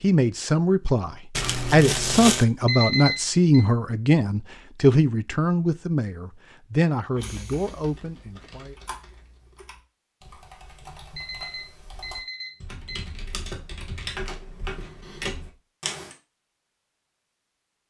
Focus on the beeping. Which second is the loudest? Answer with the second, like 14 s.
3 s.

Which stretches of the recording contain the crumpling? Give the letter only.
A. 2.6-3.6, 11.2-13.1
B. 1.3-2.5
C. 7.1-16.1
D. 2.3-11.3
B.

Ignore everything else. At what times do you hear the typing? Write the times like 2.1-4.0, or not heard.
7.1-16.1.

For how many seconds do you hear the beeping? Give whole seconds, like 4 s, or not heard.
3 s.